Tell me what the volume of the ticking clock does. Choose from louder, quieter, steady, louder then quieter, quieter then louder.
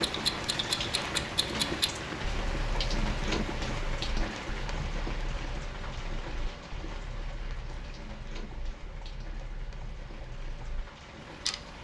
quieter then louder.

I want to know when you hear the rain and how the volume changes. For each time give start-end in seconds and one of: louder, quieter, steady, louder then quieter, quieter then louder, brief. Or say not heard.
0.0-11.8 quieter.